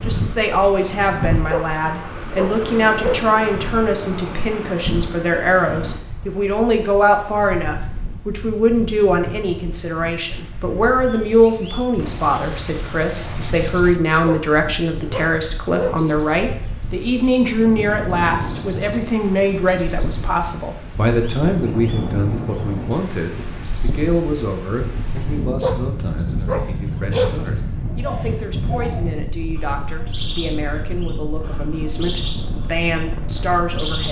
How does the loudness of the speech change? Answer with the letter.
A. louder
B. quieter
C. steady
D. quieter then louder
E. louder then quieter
B.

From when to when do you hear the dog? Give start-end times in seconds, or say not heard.
1.5-3.3, 14.2-16.1, 25.6-27.4.